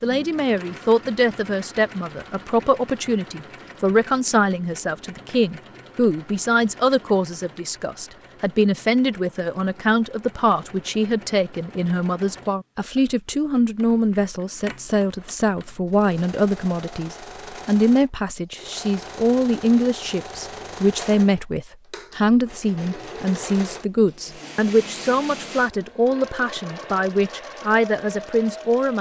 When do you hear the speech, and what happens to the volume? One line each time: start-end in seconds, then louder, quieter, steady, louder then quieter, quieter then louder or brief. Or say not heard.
0.0-28.9 steady.